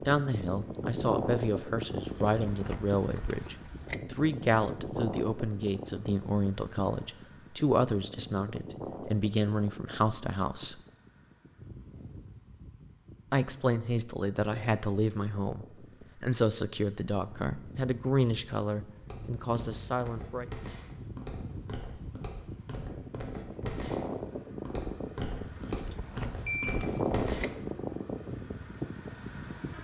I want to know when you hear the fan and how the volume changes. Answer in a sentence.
You can hear the fan from 0.0 to 29.7 s, getting quieter then louder.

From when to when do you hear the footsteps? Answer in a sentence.
The footsteps can be heard from 19.1 to 27.6 s.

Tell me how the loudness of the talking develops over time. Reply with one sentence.
The volume of the talking stays about the same.